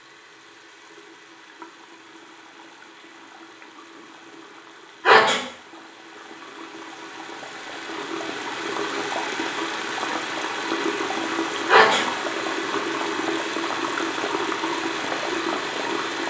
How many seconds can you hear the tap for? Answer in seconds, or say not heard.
16 s.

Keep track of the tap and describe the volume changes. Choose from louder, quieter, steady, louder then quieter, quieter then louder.
louder.